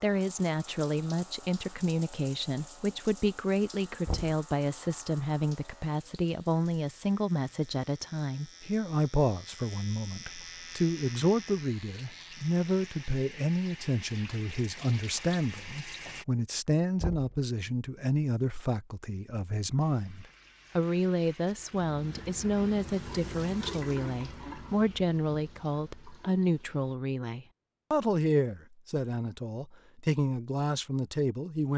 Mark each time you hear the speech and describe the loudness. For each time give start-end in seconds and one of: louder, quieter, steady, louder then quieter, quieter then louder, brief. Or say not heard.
0.0-31.7 steady.